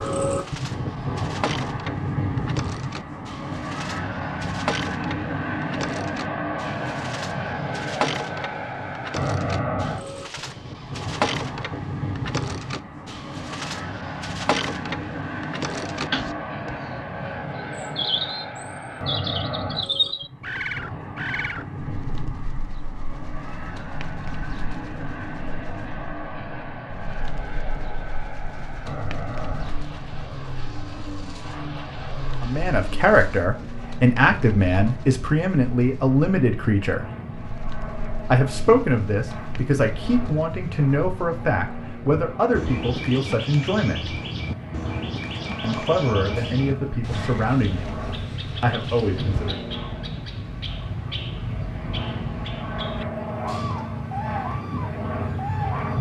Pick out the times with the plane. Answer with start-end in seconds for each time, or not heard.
0.0-55.9.